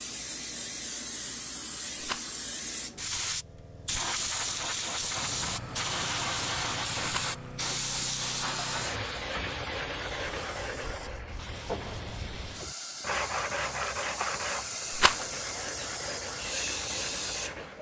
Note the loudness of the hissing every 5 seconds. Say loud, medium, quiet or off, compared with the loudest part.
loud, loud, medium, loud.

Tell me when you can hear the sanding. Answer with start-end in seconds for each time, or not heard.
8.7-17.7.